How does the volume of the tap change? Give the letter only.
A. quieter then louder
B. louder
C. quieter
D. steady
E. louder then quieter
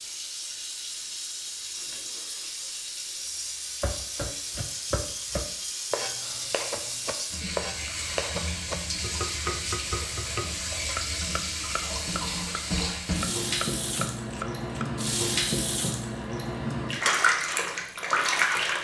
B.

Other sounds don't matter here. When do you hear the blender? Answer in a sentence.
You can't hear the blender here.